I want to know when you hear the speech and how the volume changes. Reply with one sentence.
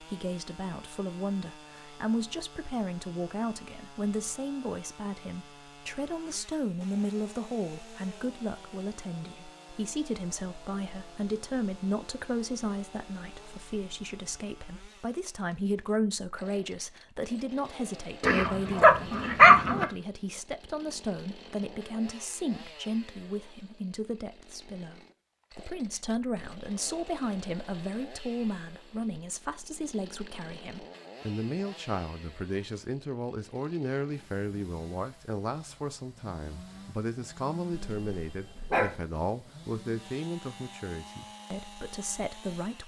The speech can be heard from 0.0 to 42.8 s, at a steady volume.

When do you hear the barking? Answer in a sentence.
The barking can be heard from 18.2 to 19.9 s and from 37.7 to 39.0 s.